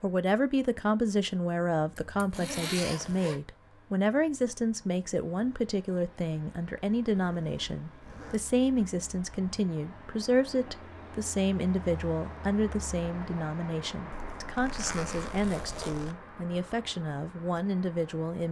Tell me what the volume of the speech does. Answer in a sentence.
The loudness of the speech stays about the same.